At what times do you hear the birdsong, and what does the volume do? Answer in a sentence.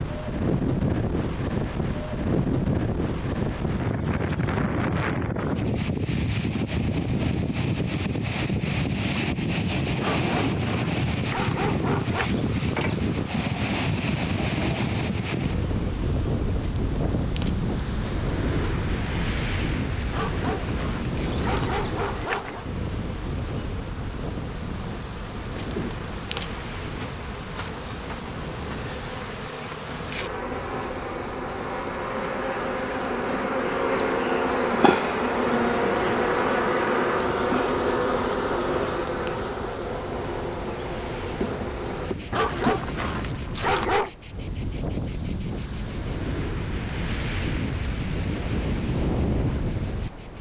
You can't hear the birdsong here.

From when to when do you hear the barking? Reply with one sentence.
You can hear the barking from 10.0 to 12.3 s, from 20.1 to 22.6 s and from 42.3 to 44.1 s.